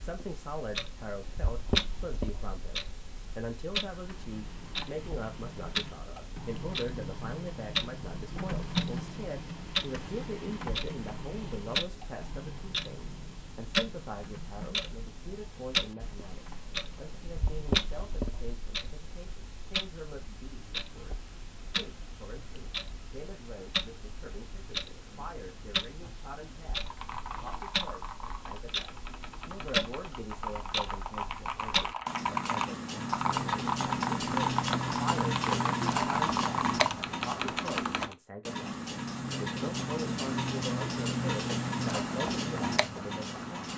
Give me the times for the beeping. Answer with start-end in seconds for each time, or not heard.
not heard.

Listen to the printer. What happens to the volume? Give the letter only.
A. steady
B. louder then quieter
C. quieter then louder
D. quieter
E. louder
B.